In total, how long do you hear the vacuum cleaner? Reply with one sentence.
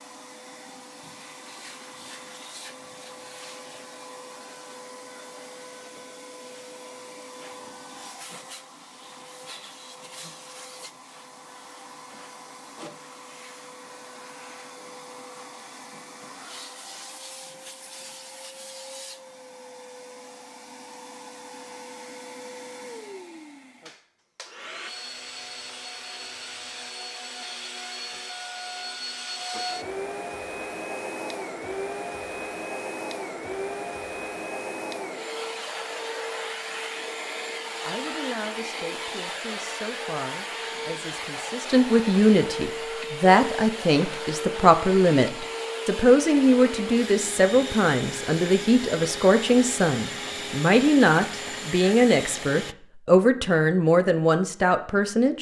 The vacuum cleaner can be heard for 53 seconds in total.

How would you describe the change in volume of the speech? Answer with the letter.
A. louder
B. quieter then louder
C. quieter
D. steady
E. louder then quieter
A.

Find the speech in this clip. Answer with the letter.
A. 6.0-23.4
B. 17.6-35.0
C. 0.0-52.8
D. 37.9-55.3
D.